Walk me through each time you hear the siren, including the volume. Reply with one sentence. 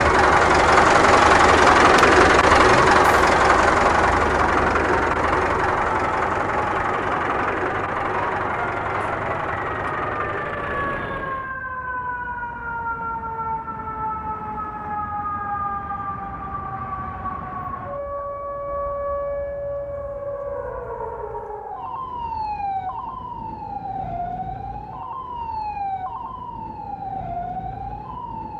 You can hear the siren from 0.0 to 28.5 s, at a steady volume.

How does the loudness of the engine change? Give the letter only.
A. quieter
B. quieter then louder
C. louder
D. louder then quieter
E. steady
A.